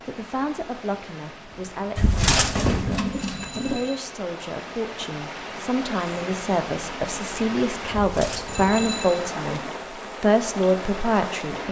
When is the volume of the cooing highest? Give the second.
2 s.